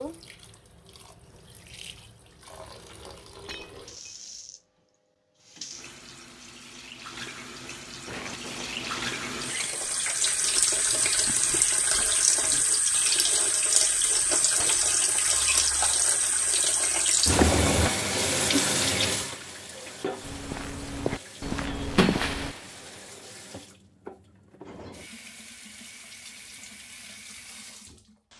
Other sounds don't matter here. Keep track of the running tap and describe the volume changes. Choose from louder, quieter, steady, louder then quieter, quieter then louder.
louder then quieter.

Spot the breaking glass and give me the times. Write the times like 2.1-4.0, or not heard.
3.5-4.1, 14.6-15.1, 21.9-23.2.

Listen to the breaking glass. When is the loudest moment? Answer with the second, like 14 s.
22 s.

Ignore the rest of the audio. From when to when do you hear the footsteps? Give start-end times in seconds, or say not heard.
8.1-10.6, 20.2-22.6.